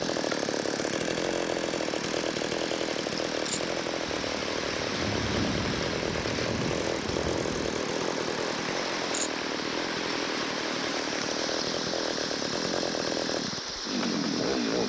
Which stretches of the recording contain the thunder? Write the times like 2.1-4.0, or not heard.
4.0-7.7.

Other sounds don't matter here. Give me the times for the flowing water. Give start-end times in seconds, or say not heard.
0.0-14.8.